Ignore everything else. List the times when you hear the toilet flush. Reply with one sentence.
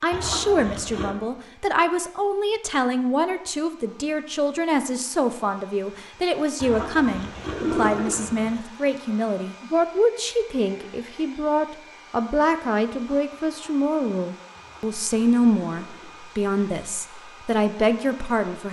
You can hear the toilet flush from 0.1 to 1.1 s, from 6.6 to 8.6 s and from 14.6 to 16.4 s.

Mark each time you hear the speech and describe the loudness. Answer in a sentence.
The speech can be heard from 0.0 to 18.6 s, at a steady volume.